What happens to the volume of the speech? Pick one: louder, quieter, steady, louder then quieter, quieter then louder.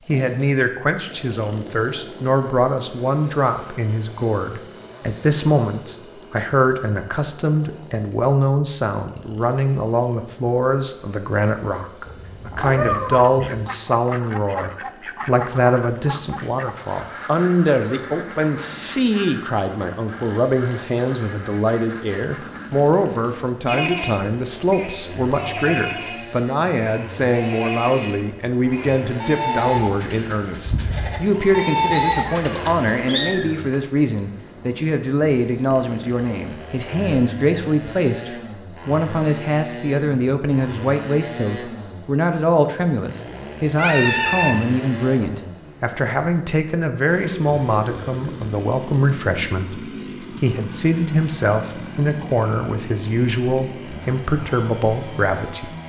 steady.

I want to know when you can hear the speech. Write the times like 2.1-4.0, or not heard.
0.1-55.7.